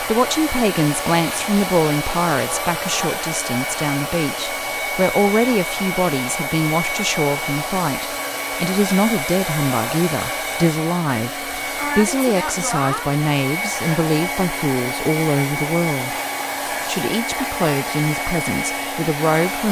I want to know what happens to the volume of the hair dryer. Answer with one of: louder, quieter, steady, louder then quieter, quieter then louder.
steady.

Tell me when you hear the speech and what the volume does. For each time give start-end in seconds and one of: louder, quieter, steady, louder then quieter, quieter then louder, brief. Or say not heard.
0.0-16.1 steady
16.9-19.6 brief.